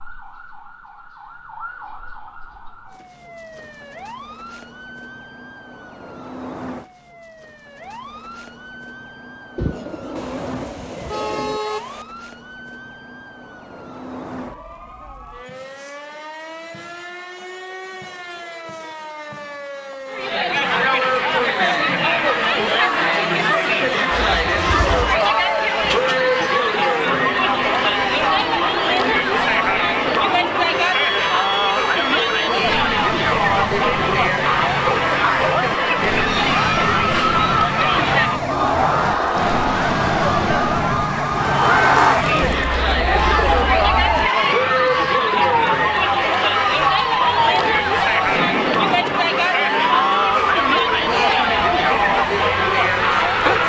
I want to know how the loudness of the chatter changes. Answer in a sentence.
The volume of the chatter stays about the same.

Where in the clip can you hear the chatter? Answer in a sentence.
The chatter can be heard from 20.1 to 53.6 s.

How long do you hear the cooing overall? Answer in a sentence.
The cooing can be heard for 6 seconds in total.